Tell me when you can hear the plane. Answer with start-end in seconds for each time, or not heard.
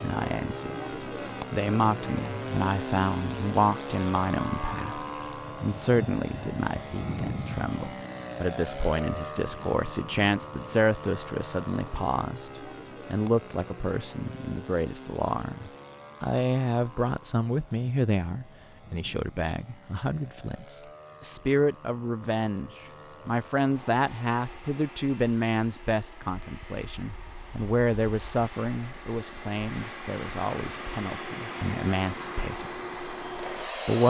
0.0-34.0.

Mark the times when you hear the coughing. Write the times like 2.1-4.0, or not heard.
not heard.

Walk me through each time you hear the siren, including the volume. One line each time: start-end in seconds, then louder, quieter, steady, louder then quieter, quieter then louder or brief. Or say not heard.
not heard.